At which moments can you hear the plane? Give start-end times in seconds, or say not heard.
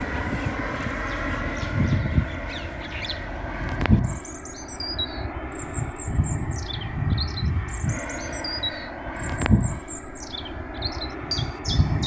0.0-12.0.